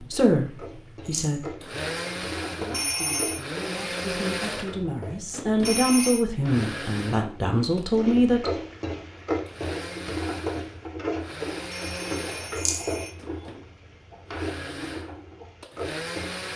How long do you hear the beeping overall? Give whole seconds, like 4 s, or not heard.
3 s.